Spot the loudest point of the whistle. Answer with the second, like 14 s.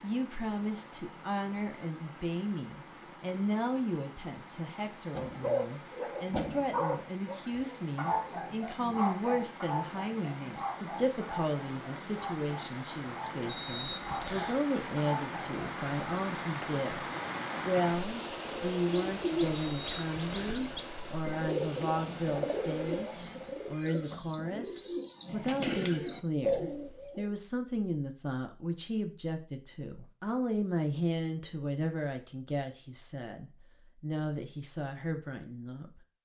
14 s.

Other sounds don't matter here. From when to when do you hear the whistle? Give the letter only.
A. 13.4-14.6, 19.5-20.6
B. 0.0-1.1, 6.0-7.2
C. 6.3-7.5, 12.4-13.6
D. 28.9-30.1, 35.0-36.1
A.